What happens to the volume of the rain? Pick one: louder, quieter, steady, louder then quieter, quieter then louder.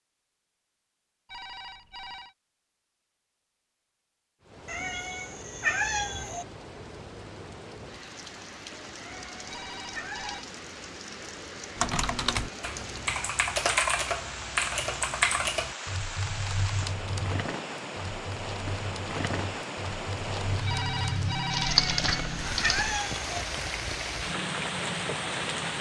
louder.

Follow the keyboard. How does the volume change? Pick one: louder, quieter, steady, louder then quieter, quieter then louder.
quieter then louder.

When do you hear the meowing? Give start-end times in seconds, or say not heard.
4.7-6.5, 8.9-10.4, 21.6-23.4.